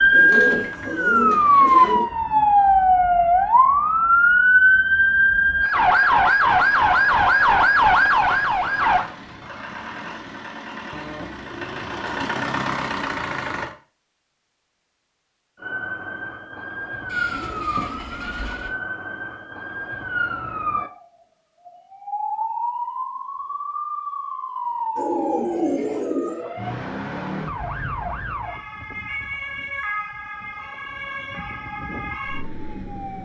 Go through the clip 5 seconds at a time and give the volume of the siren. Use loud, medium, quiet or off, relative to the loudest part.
loud, loud, off, quiet, quiet, quiet, quiet.